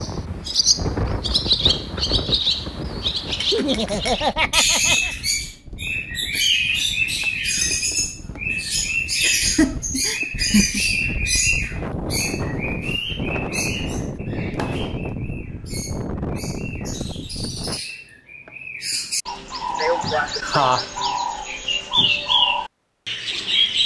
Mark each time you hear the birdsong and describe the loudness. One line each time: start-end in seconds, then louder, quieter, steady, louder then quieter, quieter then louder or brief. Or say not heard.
0.0-23.8 quieter then louder.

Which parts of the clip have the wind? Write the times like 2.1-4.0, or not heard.
0.0-17.8.